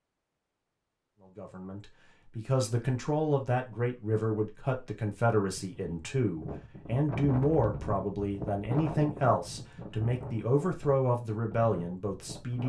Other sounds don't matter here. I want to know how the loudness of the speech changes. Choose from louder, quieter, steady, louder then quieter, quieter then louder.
steady.